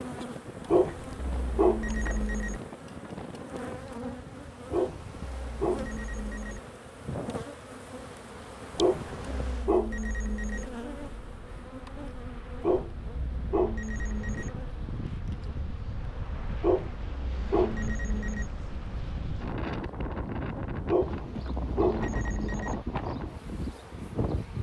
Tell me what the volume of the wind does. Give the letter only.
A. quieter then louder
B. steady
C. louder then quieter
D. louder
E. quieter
D.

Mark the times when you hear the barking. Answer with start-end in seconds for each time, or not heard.
0.7-2.6, 4.7-6.6, 8.8-10.7, 12.6-14.6, 16.6-18.5, 20.9-22.8.